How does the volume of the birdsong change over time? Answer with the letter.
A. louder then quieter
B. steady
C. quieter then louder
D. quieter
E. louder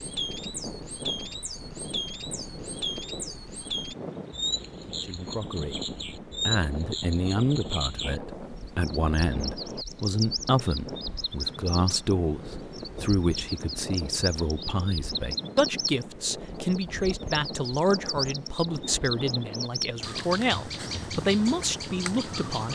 B.